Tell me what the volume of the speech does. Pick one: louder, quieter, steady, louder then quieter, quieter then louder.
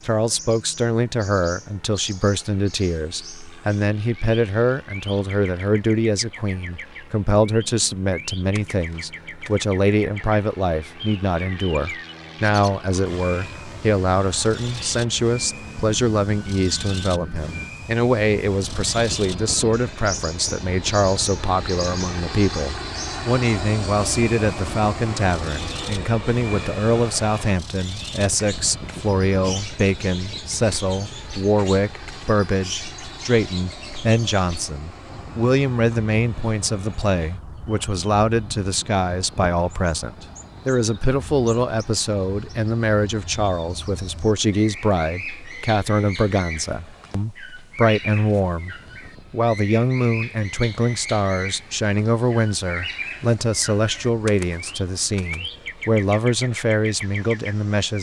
steady.